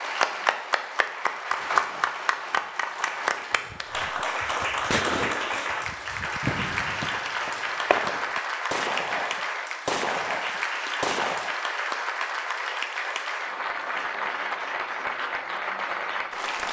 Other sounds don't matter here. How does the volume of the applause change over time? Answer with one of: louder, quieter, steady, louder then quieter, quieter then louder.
steady.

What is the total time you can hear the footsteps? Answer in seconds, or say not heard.
not heard.